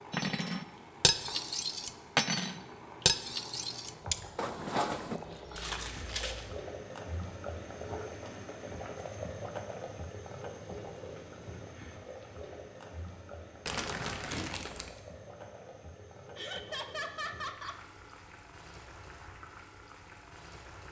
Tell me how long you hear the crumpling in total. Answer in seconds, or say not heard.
2 s.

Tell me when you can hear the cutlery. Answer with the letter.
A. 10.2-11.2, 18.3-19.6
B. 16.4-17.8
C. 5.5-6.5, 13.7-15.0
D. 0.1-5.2
D.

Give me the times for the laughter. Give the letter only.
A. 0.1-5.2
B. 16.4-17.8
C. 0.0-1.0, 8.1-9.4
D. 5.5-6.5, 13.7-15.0
B.